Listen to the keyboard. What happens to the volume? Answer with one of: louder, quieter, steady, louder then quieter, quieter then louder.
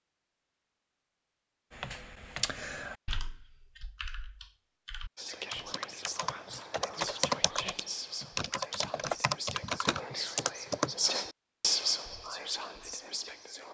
quieter then louder.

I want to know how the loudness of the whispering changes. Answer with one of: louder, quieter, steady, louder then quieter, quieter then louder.
louder.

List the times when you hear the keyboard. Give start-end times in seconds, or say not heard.
1.7-10.9.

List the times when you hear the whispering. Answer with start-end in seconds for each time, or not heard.
5.2-13.6.